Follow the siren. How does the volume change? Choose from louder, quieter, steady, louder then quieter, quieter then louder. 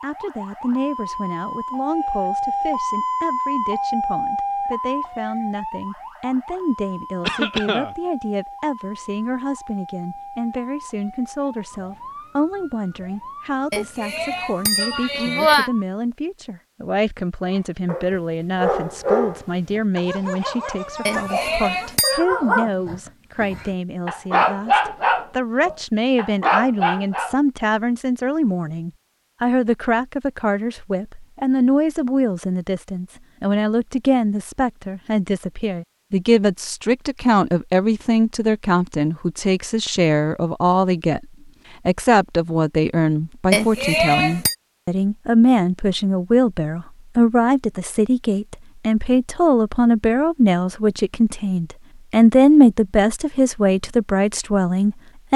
quieter.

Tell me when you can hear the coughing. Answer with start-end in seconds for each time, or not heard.
7.2-8.0.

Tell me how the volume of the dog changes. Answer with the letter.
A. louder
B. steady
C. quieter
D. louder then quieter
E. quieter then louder
E.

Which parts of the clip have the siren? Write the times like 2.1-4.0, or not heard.
0.0-15.8.